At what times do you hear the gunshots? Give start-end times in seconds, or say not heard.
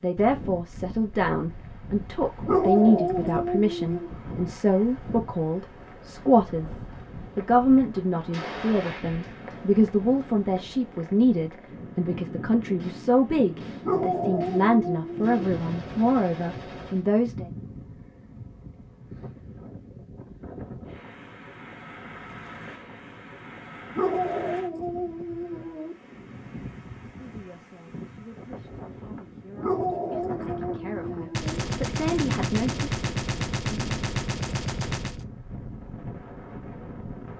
8.3-9.7, 12.8-17.1, 31.3-35.2.